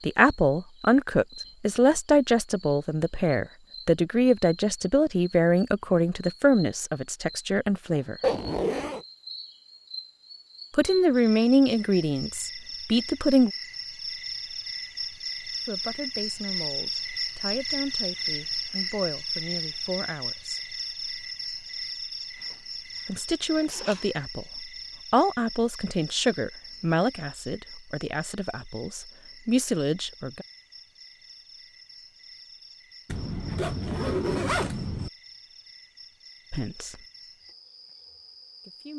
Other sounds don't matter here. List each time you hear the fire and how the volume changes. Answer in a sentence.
You can't hear the fire here.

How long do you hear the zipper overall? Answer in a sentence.
The zipper can be heard for 4 seconds in total.